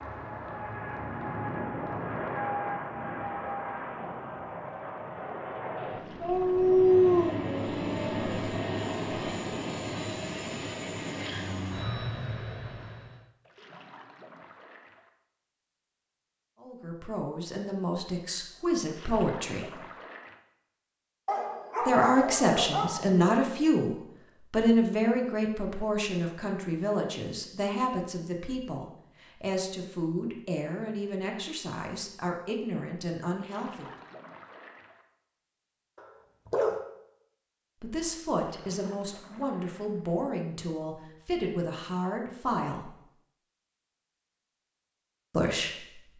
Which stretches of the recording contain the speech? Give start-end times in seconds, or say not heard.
16.6-19.8, 21.8-33.9, 37.8-43.0, 45.3-46.1.